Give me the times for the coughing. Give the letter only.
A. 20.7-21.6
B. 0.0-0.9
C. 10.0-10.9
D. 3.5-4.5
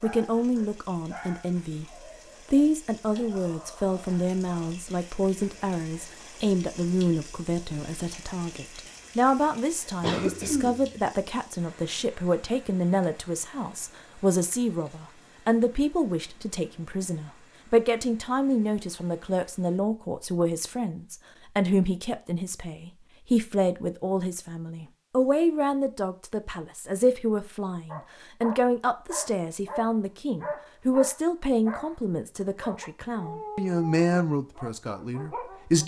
C.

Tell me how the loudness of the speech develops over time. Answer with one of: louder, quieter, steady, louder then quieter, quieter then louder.
steady.